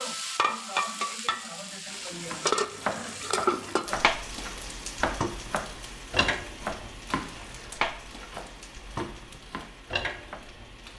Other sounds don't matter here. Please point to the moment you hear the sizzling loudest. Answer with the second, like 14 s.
3 s.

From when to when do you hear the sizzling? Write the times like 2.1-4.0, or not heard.
0.0-10.9.